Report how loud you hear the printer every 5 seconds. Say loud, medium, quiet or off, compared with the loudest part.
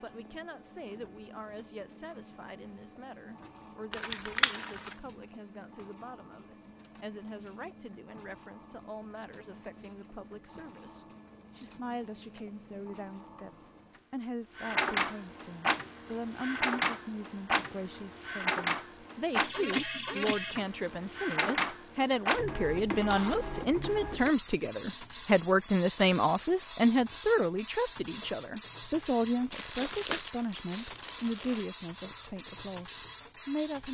quiet, quiet, medium, loud, loud, medium, medium.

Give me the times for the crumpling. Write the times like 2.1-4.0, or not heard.
3.9-5.0, 29.5-31.6.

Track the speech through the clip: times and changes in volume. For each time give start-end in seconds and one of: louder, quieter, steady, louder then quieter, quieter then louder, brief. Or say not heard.
0.0-33.8 louder.